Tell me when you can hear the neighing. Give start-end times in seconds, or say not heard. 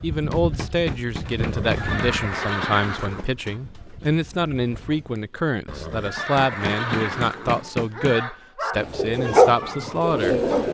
1.4-3.4, 5.7-8.3.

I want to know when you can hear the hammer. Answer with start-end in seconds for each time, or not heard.
0.1-1.9, 6.2-8.2.